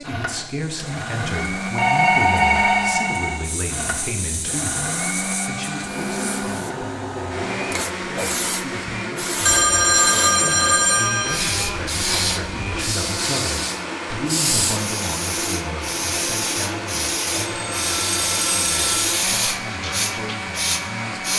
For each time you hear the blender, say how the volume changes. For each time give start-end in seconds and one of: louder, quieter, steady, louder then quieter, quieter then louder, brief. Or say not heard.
0.0-21.3 steady.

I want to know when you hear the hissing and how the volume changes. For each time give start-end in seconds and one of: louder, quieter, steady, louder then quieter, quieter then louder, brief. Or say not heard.
0.0-21.3 louder.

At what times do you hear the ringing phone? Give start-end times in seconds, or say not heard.
1.8-3.5, 9.4-11.3, 17.4-19.1.